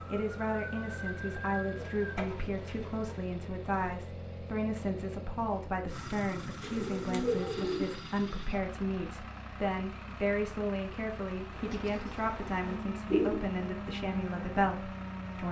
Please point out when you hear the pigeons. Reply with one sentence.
You can hear the pigeons from 1.7 to 3.1 s, from 6.6 to 8.0 s and from 11.6 to 13.4 s.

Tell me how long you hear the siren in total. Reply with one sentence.
The siren can be heard for 5 seconds in total.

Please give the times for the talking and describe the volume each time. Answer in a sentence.
The talking can be heard from 0.1 to 15.4 s, at a steady volume.